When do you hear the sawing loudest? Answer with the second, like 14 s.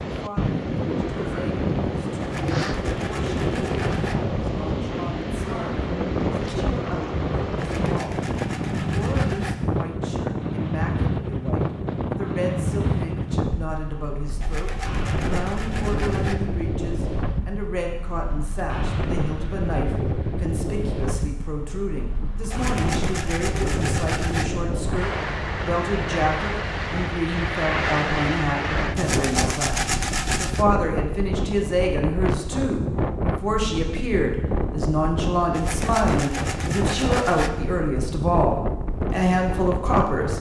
30 s.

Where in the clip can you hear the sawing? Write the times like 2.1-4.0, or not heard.
2.2-4.2, 7.5-9.6, 14.4-16.4, 22.5-24.4, 28.9-30.6, 35.5-37.5.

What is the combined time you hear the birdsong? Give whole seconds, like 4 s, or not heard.
not heard.